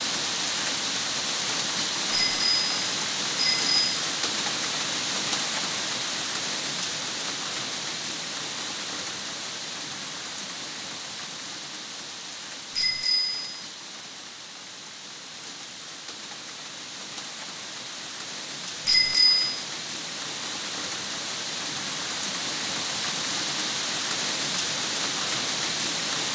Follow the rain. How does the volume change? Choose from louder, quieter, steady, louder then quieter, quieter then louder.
quieter then louder.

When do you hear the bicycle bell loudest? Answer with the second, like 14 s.
19 s.